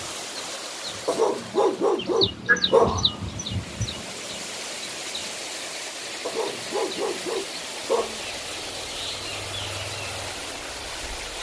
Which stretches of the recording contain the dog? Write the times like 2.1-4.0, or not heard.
1.1-3.0, 6.2-8.2.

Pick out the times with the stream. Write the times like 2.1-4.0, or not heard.
0.0-11.3.